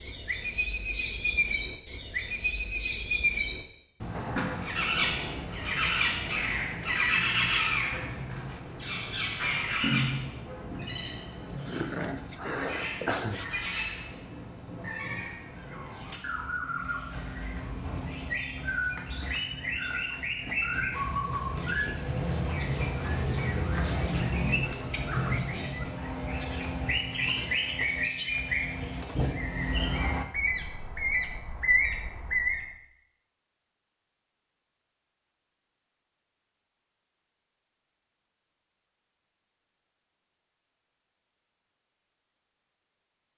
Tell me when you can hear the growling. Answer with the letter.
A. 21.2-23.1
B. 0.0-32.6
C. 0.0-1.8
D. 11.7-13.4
D.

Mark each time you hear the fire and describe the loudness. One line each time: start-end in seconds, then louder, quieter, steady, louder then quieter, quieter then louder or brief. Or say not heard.
not heard.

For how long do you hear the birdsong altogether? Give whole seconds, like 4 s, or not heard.
33 s.